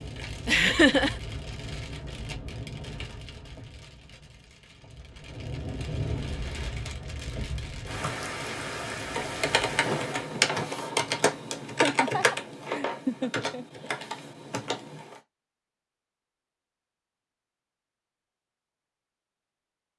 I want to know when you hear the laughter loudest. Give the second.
1 s.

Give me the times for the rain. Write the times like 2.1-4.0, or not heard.
0.0-10.5.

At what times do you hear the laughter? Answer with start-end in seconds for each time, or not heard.
0.5-1.1, 11.8-13.7.